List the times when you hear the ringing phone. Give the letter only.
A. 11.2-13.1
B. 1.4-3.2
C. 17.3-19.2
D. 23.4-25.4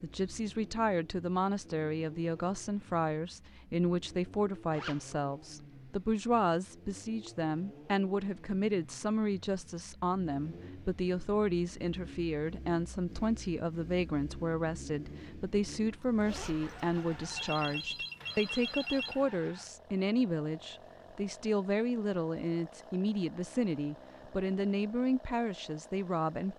C.